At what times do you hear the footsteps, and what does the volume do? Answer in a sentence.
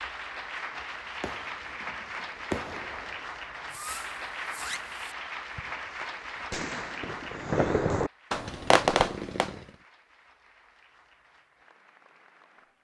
You can't hear the footsteps here.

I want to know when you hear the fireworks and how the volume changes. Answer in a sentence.
You can hear the fireworks from 1.2 to 9.6 s, getting quieter then louder.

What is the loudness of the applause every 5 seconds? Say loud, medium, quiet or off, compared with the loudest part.
loud, loud, quiet.